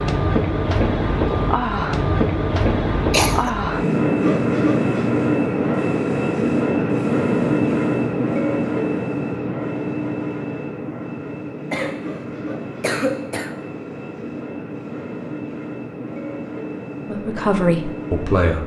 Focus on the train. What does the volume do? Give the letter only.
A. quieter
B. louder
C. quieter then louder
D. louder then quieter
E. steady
A.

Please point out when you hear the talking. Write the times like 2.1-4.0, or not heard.
17.1-18.6.